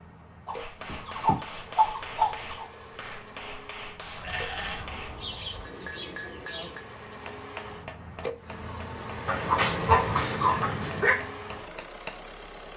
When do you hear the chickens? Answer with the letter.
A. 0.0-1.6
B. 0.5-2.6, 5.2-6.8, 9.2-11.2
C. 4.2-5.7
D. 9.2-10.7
B.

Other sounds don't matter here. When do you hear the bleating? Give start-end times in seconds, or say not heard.
4.2-5.7.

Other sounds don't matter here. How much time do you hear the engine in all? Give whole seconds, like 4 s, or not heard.
13 s.